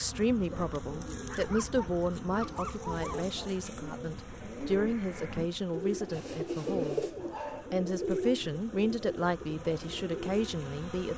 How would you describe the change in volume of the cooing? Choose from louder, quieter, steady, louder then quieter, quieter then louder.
louder then quieter.